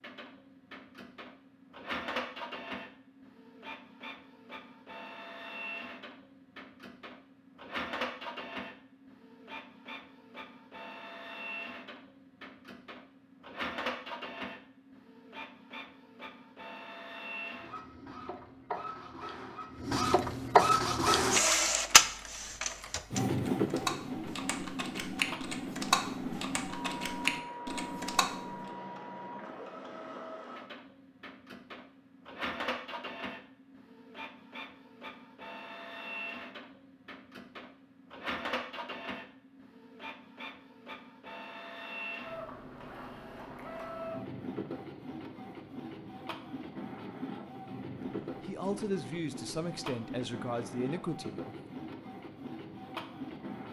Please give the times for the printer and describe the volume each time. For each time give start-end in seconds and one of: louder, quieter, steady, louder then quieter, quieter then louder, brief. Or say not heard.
0.0-53.6 louder then quieter.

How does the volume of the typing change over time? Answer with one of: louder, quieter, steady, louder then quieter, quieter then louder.
louder.